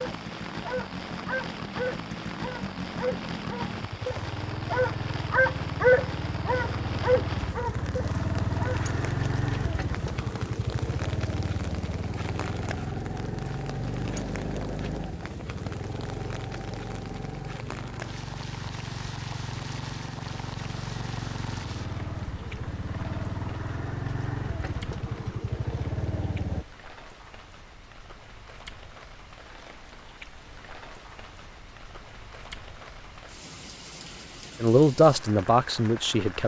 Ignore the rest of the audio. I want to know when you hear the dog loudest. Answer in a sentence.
The volume of the dog peaks at 6 seconds.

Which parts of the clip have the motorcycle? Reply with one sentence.
The motorcycle can be heard from 0.0 to 26.6 s.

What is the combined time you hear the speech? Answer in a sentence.
The speech can be heard for 2 seconds in total.